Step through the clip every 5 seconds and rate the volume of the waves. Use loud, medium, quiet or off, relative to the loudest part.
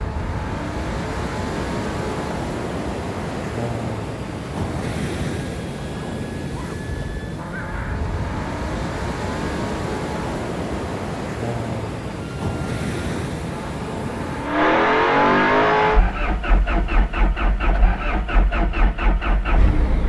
loud, loud, loud, quiet.